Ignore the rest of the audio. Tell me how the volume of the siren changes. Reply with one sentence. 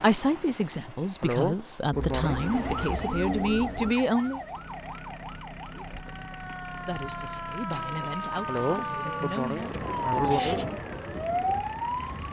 The volume of the siren goes down, then up.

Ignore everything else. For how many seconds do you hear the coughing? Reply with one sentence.
The coughing can be heard for 3 seconds in total.